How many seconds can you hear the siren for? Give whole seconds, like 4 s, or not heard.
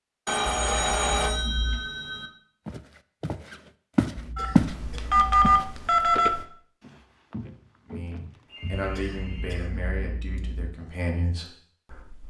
not heard.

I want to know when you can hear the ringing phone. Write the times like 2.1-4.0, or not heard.
0.2-2.3, 4.3-6.5, 8.4-9.6.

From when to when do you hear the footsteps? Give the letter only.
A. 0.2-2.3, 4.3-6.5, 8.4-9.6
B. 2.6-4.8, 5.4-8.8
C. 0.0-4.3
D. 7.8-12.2
B.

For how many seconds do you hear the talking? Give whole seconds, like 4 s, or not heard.
4 s.